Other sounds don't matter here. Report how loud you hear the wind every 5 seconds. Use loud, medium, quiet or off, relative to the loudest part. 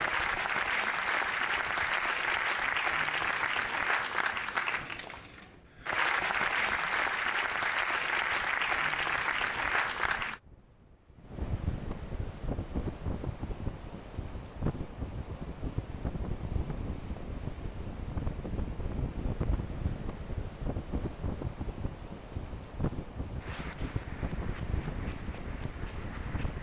quiet, quiet, loud, loud, loud, loud.